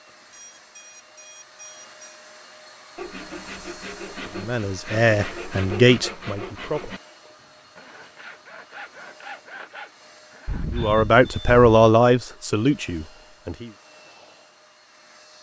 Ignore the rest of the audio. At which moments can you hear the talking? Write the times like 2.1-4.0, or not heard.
4.2-7.0, 10.7-13.7.